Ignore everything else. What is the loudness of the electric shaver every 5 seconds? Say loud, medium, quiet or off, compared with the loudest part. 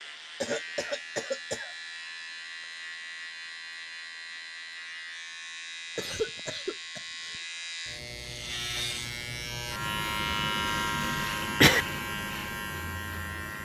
medium, medium, loud.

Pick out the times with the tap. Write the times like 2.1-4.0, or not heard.
not heard.